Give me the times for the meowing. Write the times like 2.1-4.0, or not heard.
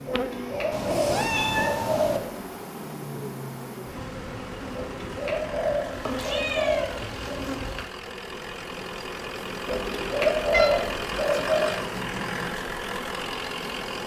0.7-2.2, 5.9-7.8, 10.5-11.0.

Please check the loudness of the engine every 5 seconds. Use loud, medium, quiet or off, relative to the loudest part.
medium, medium, loud.